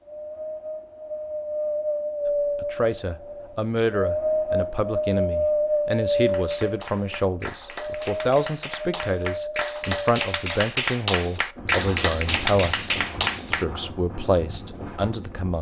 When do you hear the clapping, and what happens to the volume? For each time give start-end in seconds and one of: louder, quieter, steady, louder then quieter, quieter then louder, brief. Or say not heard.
6.2-13.7 louder.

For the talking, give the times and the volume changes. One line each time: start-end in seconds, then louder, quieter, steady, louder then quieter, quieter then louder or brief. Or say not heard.
2.6-15.5 steady.